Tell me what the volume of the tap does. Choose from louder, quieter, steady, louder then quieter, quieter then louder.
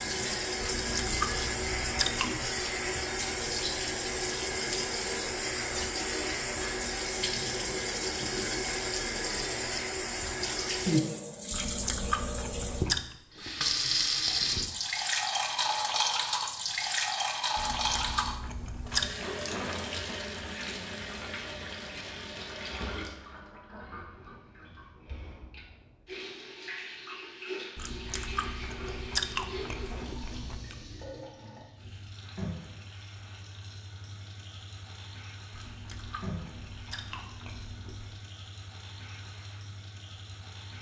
quieter.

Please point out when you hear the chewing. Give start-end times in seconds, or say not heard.
0.6-2.3, 11.5-13.1, 17.6-19.1, 27.8-30.8, 35.5-38.1.